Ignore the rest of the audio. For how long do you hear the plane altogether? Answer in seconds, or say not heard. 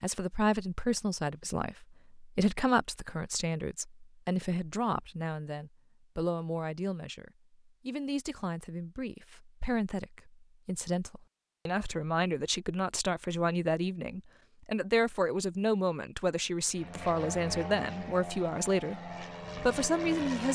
4 s.